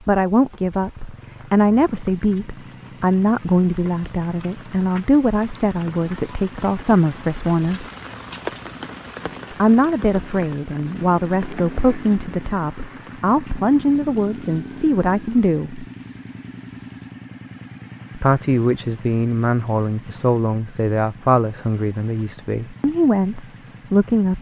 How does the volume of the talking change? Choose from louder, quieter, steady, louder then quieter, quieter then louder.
steady.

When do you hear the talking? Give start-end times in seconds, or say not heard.
0.1-7.8, 9.6-15.8, 18.1-24.3.